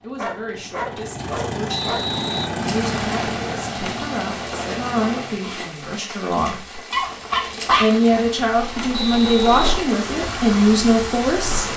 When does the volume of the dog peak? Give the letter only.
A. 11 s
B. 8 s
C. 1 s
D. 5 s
B.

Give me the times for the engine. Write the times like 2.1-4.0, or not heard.
0.0-5.5, 8.4-11.7.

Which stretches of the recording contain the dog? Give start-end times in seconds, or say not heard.
0.1-2.0, 6.9-8.3.